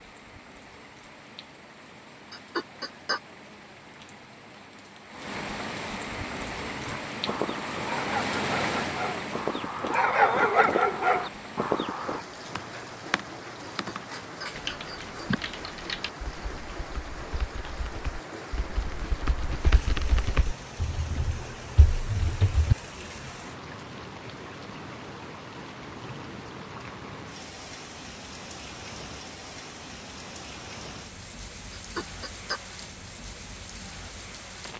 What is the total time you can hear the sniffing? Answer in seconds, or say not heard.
3 s.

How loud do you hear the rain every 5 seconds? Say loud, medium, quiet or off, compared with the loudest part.
quiet, loud, medium, medium, medium, medium, medium.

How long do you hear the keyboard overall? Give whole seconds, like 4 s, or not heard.
10 s.